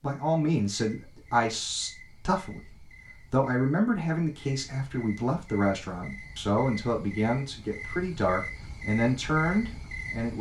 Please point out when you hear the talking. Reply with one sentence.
You can hear the talking from 0.0 to 10.3 s.